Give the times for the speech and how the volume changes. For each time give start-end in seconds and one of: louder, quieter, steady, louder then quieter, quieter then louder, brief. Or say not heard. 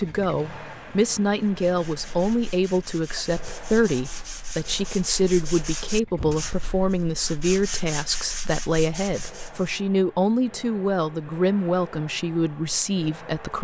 0.0-13.5 steady.